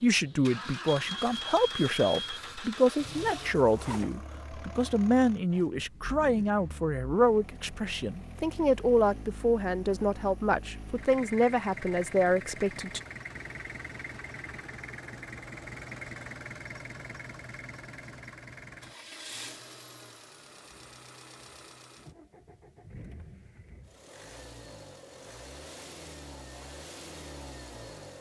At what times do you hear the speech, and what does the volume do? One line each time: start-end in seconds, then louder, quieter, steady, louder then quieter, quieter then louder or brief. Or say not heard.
0.0-13.0 steady.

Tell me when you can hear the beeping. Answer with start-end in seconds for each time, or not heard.
0.9-2.4.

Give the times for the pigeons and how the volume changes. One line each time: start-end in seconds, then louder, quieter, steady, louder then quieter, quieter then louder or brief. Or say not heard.
not heard.